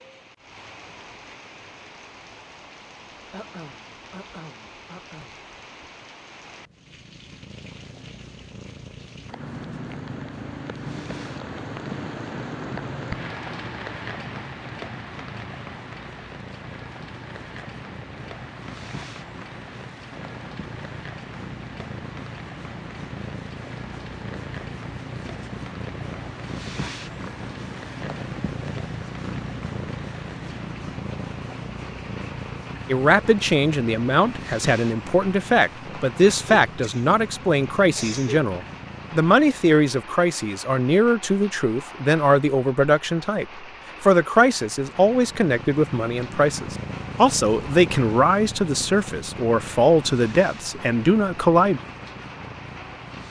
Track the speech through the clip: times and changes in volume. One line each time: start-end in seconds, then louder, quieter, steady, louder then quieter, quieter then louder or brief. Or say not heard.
32.9-51.8 steady.